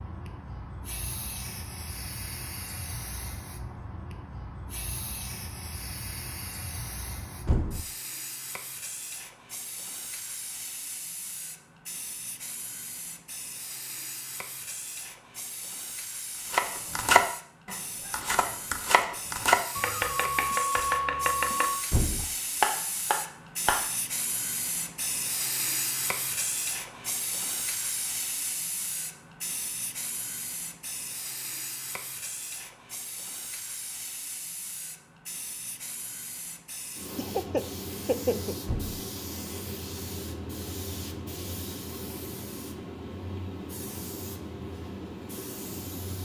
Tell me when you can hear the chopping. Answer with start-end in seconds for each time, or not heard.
16.5-23.9.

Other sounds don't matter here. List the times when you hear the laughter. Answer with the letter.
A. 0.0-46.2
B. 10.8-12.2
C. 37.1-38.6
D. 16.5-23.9
C.